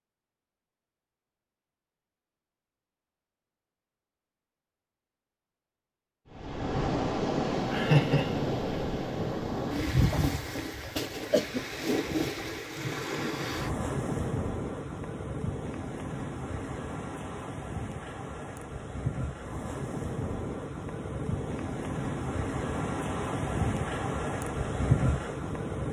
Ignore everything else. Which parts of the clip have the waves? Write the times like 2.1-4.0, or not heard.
6.3-25.8.